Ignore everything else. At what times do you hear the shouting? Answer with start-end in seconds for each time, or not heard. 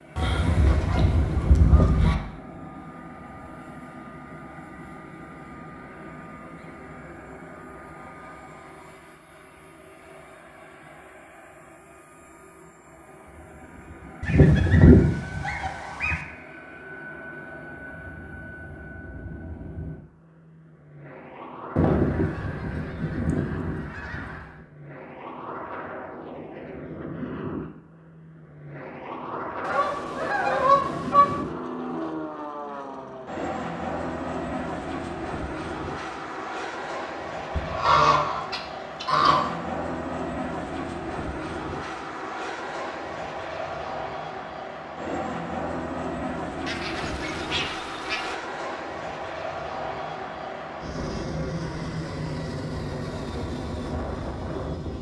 not heard.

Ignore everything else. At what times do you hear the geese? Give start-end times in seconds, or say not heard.
0.1-2.1, 14.2-16.2, 21.8-24.5, 29.6-31.4, 37.5-39.4, 46.6-48.4.